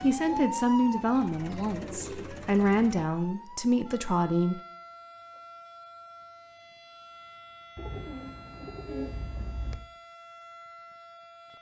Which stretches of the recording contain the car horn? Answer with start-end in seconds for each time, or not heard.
8.5-9.7.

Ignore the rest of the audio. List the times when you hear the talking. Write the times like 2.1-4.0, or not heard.
0.0-4.6.